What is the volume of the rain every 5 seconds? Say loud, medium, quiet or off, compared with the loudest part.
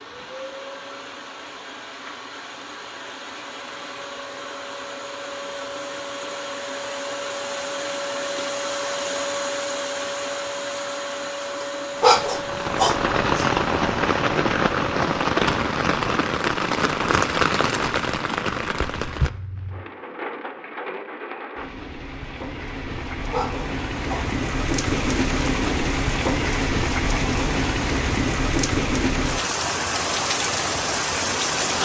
off, off, loud, loud, medium, loud, loud.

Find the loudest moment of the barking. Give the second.
12 s.